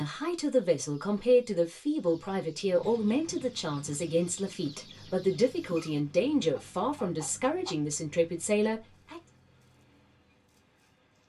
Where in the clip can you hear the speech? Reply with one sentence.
You can hear the speech from 0.0 to 9.2 s.